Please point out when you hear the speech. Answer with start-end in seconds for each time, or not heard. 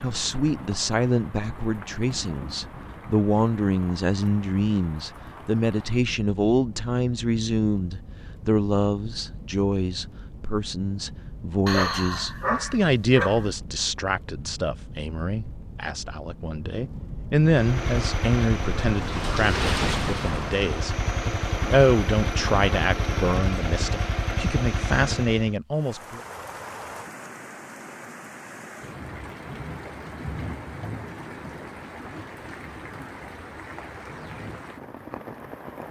0.0-26.2.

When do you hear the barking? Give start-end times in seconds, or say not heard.
11.7-13.5.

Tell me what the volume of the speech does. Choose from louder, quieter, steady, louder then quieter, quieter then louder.
steady.